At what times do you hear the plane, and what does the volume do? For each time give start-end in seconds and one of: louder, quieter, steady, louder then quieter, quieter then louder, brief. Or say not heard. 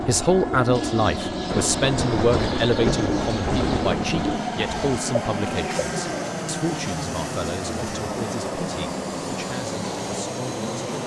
0.0-11.0 steady.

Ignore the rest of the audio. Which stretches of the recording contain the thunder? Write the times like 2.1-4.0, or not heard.
1.5-4.5.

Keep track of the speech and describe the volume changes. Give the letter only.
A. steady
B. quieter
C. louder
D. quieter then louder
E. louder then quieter
B.